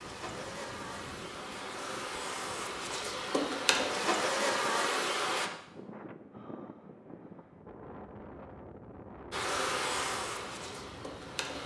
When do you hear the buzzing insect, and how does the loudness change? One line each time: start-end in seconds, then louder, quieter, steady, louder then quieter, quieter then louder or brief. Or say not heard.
0.0-5.5 louder
9.3-11.6 brief.